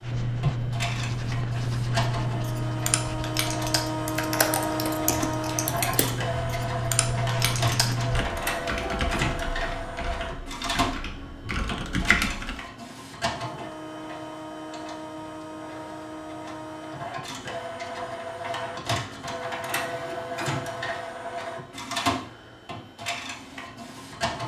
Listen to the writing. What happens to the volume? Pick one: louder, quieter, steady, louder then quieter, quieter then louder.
quieter then louder.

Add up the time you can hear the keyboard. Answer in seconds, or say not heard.
10 s.